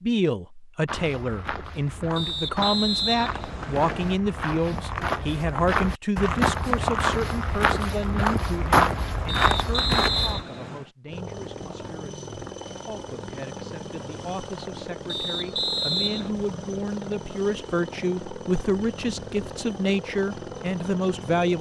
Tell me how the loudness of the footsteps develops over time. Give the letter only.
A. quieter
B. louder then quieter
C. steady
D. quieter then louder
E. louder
E.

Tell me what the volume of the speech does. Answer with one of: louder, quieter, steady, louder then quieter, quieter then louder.
quieter then louder.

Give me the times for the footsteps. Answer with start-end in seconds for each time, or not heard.
0.8-10.4.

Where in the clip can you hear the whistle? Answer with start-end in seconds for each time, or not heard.
2.1-4.2, 9.2-10.9, 15.1-16.3.